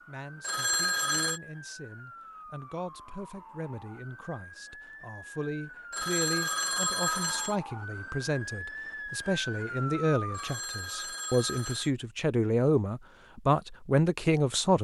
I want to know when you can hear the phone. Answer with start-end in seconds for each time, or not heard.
0.4-1.4, 5.9-7.5, 10.3-11.9.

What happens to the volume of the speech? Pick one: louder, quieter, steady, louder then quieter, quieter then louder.
louder.